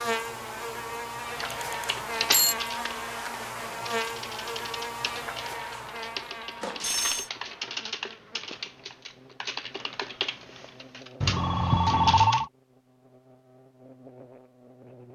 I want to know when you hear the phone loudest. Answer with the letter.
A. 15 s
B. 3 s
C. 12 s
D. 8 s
C.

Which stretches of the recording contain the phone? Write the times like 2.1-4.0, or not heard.
1.5-2.5, 6.6-7.3, 11.2-12.5.